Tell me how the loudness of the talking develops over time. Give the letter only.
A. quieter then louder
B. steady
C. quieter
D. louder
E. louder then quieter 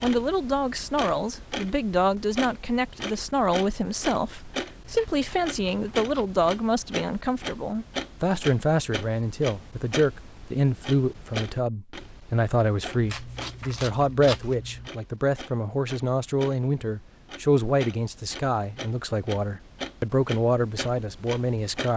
B.